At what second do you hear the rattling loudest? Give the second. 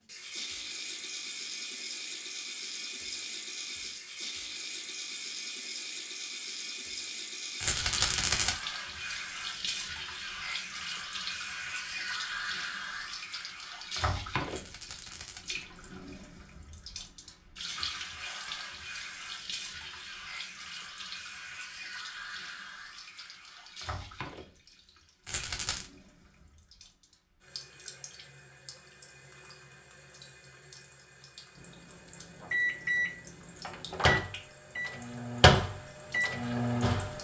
8 s.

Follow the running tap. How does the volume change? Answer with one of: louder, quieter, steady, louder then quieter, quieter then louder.
quieter.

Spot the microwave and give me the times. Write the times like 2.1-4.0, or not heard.
31.6-37.1.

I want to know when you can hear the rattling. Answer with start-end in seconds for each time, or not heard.
7.6-8.6, 14.4-15.4, 25.2-25.9.